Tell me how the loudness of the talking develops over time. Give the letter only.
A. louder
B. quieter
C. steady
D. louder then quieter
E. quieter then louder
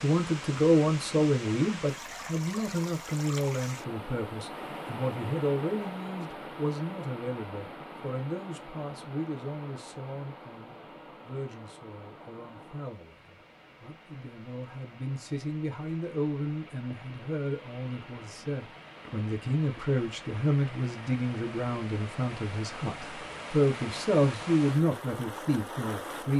E.